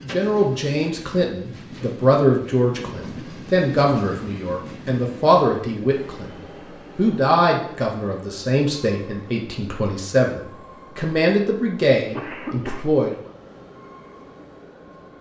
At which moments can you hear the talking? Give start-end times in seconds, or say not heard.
0.0-6.2, 7.0-13.2.